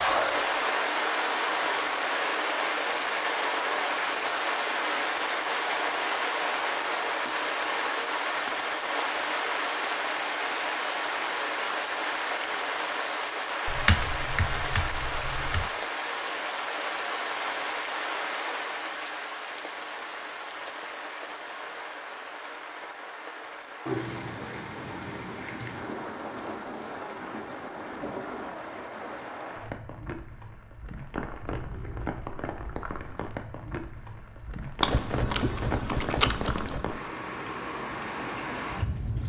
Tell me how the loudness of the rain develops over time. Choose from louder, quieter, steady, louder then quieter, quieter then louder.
quieter.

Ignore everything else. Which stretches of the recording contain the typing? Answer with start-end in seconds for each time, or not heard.
13.7-15.7, 34.8-36.9.